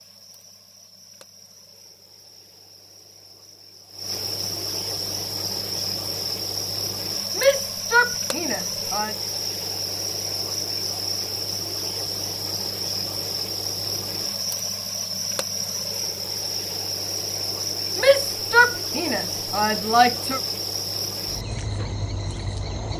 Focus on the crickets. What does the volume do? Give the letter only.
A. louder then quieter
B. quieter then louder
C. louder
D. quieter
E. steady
C.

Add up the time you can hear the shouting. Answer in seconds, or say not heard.
4 s.